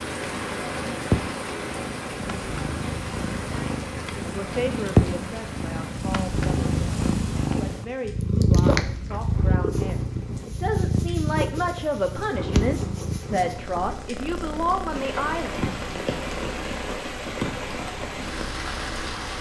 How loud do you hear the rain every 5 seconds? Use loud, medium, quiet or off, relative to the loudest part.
loud, medium, medium, loud.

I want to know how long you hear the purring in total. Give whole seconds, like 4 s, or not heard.
19 s.